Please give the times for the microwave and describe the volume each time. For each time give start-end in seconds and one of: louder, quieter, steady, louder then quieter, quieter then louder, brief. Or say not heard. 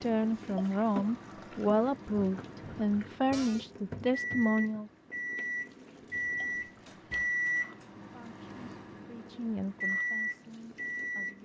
0.0-11.4 louder.